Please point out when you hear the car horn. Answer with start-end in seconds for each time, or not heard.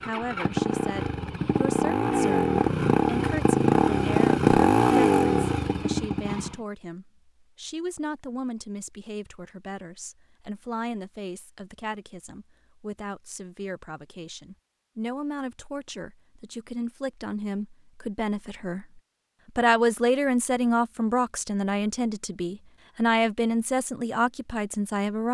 not heard.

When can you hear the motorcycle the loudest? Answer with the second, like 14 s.
5 s.